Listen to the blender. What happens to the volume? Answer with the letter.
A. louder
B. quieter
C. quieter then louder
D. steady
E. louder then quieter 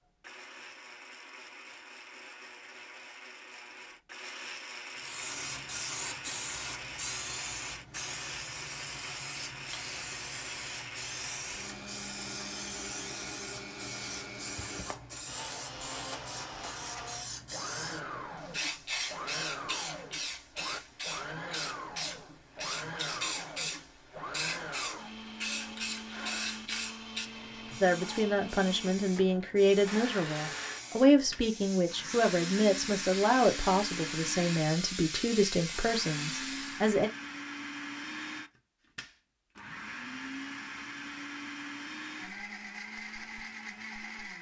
D.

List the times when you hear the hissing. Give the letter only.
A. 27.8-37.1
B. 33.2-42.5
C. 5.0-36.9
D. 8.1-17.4
C.